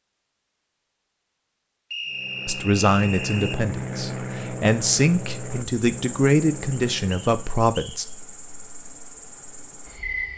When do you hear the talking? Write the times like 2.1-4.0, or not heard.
2.5-8.1.